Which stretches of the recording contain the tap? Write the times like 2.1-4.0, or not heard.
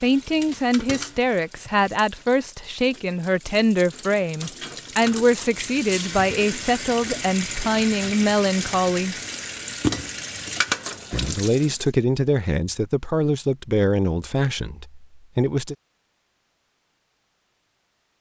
0.0-11.9.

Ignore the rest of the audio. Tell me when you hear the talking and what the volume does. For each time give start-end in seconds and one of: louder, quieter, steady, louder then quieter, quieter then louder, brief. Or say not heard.
0.0-9.2 steady
11.1-15.8 quieter.